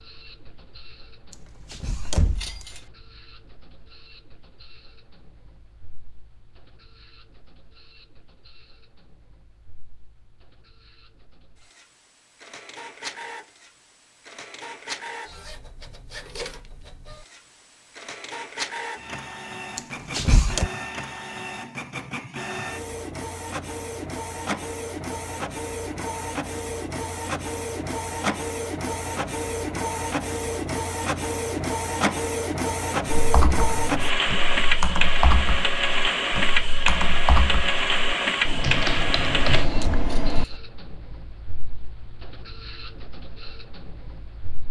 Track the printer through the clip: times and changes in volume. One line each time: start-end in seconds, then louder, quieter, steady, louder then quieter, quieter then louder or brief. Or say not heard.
0.0-44.6 louder.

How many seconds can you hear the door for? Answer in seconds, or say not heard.
3 s.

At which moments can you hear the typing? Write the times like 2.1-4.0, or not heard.
33.1-40.6.